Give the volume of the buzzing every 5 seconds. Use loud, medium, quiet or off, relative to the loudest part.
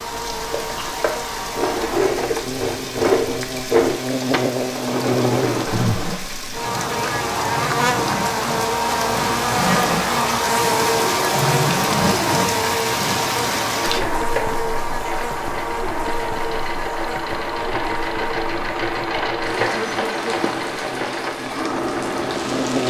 medium, loud, loud, medium, medium.